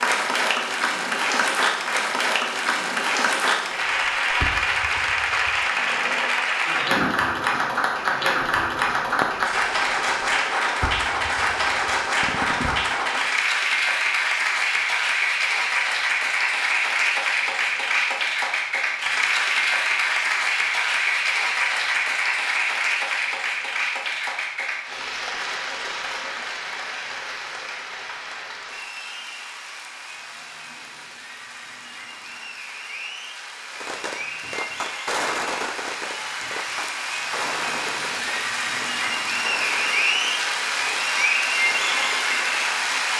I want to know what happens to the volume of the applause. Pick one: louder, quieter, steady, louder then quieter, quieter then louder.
quieter then louder.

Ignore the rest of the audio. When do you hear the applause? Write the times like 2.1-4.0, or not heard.
0.0-43.1.